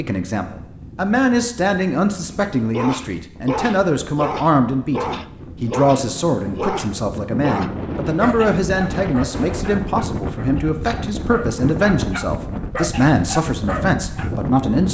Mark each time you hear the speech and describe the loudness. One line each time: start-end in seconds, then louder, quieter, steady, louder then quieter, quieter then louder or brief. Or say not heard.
0.0-14.8 steady.